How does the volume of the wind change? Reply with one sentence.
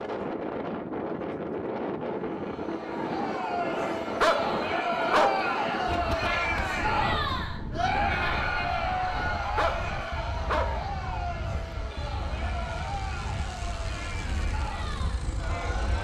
The volume of the wind goes down.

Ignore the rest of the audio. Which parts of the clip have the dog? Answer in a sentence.
The dog can be heard from 4.2 to 5.5 s and from 9.6 to 10.8 s.